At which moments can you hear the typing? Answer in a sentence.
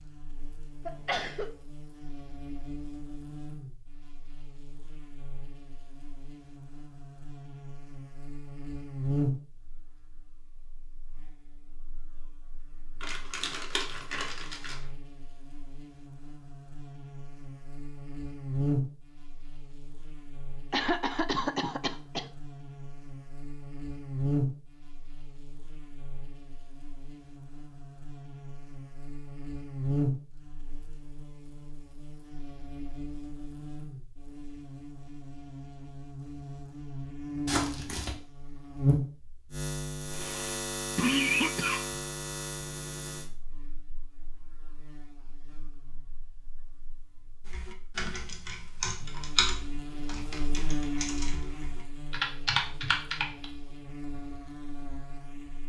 The typing can be heard from 47.5 to 53.5 s.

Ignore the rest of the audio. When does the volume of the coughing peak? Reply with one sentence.
The volume of the coughing peaks at 41 seconds.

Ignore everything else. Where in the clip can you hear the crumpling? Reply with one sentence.
You can hear the crumpling from 13.0 to 14.8 s and from 37.5 to 38.1 s.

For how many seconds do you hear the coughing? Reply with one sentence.
The coughing can be heard for 4 seconds in total.